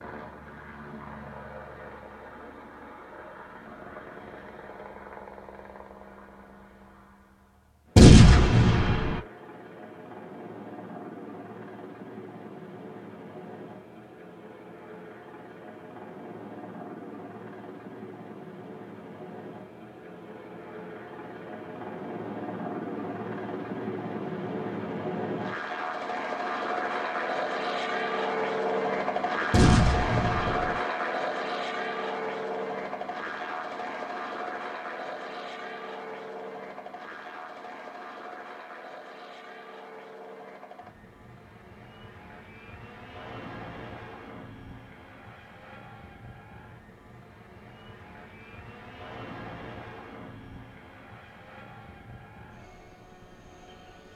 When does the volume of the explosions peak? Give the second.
8 s.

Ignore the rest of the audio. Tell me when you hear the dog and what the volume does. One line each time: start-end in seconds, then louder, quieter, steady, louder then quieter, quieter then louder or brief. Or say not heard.
not heard.